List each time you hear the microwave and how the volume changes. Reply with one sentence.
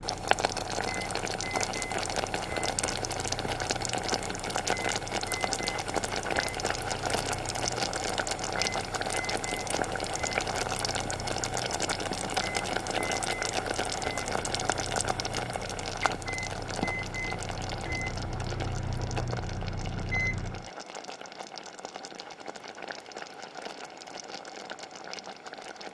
The microwave can be heard from 0.0 to 20.7 s, getting louder.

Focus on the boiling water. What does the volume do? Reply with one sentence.
The volume of the boiling water goes down.